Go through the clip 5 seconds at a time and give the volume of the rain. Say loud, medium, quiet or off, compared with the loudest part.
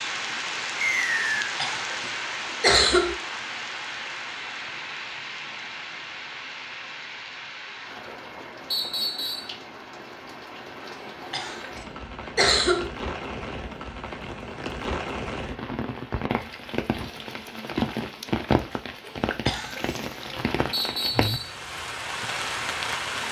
loud, medium, medium, loud, loud.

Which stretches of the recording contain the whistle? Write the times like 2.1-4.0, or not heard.
0.8-1.3, 8.7-9.5, 20.7-21.6.